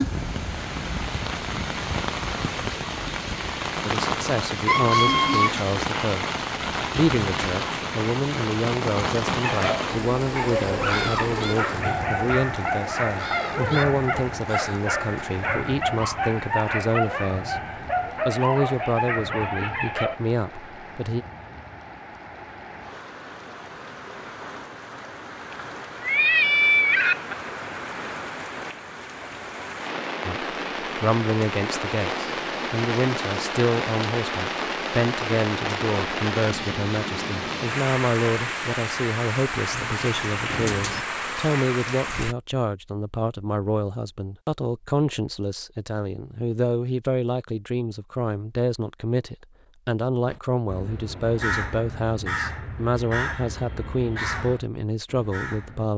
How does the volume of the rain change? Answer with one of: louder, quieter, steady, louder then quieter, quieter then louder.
quieter then louder.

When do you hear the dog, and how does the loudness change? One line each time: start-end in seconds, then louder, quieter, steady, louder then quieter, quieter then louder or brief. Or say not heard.
9.4-20.2 steady.